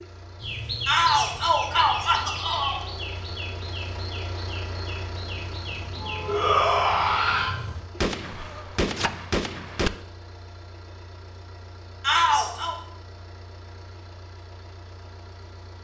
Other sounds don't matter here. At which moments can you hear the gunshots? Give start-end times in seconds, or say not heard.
8.0-9.9.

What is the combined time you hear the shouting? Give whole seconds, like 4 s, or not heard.
4 s.